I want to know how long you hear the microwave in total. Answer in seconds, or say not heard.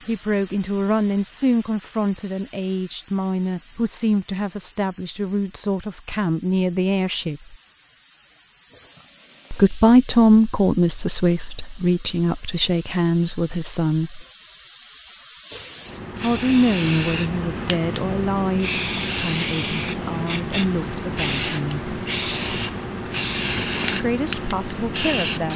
not heard.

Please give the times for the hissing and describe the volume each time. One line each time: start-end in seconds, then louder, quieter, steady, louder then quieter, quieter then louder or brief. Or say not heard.
0.0-25.5 louder.